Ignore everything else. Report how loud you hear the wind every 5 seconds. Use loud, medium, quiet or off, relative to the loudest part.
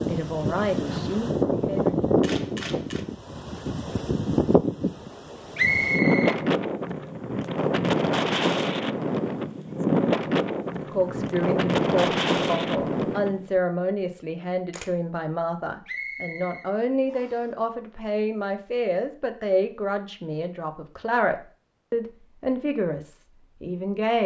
loud, loud, loud, off, off.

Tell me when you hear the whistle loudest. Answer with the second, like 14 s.
6 s.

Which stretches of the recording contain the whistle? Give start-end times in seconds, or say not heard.
5.5-6.3, 15.8-17.4.